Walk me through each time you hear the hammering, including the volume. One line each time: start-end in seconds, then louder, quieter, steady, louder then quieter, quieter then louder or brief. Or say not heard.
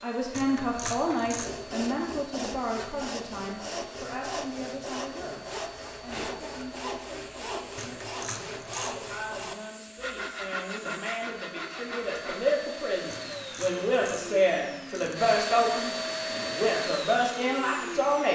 not heard.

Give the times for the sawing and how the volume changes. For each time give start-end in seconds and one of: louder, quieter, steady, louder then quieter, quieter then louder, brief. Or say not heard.
1.2-12.6 steady.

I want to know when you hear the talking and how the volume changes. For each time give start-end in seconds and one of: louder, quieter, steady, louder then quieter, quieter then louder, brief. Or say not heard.
0.0-18.3 quieter then louder.